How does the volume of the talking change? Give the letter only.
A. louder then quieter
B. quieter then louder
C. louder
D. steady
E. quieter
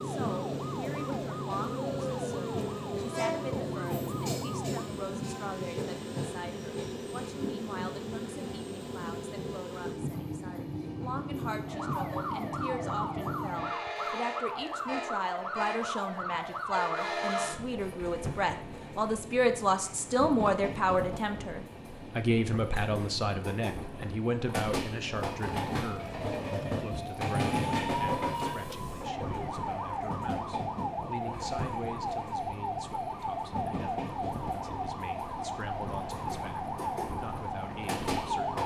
A.